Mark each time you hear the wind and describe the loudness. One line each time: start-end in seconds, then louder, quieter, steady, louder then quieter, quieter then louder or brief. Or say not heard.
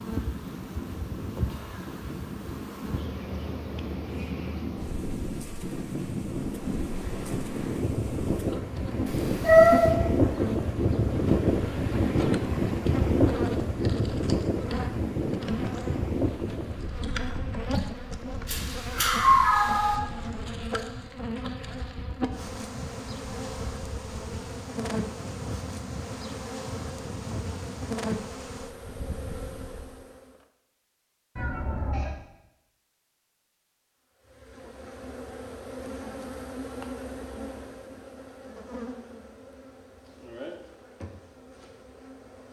0.0-29.9 louder then quieter.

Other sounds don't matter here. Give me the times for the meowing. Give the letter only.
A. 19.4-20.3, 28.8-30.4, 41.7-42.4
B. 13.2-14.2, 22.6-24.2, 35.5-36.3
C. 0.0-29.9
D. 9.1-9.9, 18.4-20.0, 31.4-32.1
D.